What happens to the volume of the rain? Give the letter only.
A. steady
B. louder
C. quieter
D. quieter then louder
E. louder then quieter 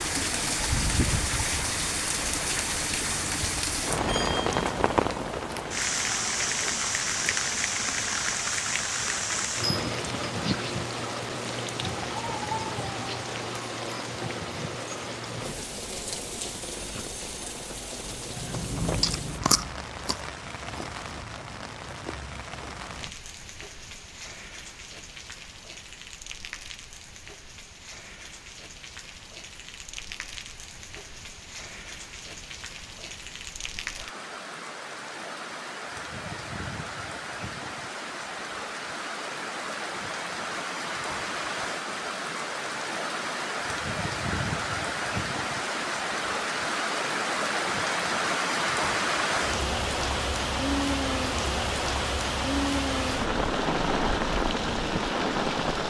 D.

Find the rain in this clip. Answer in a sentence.
You can hear the rain from 0.0 to 55.8 s.